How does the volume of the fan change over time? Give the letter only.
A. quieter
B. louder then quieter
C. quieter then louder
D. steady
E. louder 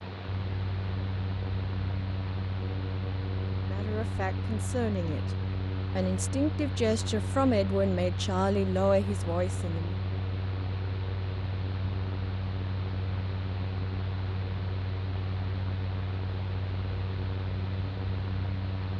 D.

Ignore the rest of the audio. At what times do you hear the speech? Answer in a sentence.
The speech can be heard from 3.6 to 5.3 s and from 6.0 to 9.9 s.